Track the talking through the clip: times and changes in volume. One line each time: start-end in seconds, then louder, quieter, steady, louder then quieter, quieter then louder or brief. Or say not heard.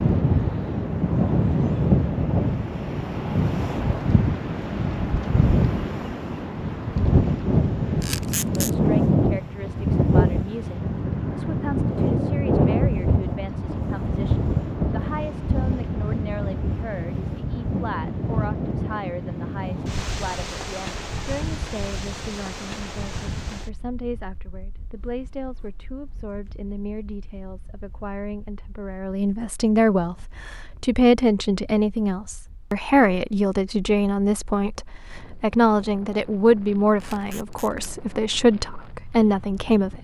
8.6-39.9 louder.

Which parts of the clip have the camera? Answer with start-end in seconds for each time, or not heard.
8.0-8.7, 37.0-37.9.